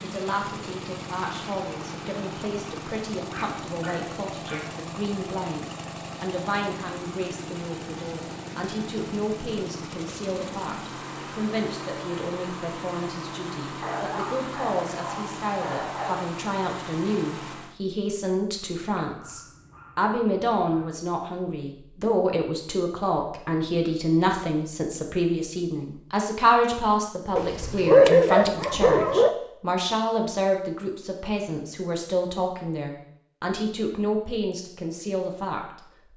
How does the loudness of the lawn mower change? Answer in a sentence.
The volume of the lawn mower stays about the same.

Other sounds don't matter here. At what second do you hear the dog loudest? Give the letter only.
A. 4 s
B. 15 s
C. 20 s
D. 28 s
D.